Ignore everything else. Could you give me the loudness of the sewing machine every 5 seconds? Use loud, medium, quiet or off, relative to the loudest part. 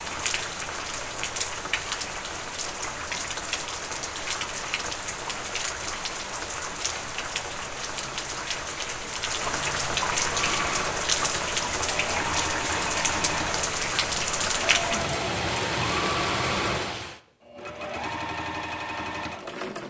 off, off, loud, loud.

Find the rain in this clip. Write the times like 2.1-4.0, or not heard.
0.0-17.2.